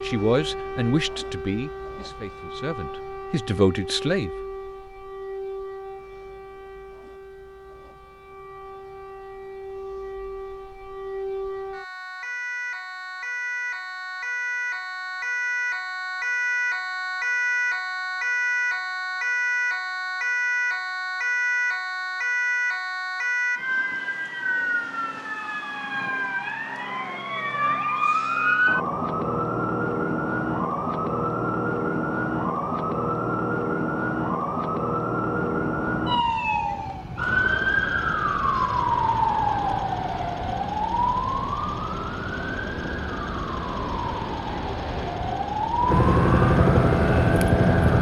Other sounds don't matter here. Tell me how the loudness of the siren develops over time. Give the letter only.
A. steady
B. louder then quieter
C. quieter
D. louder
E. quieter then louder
D.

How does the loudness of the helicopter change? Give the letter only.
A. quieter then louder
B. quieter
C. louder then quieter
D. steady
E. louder
E.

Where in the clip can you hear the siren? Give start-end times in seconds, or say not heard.
0.0-47.9.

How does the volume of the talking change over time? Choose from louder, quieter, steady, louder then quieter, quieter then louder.
quieter then louder.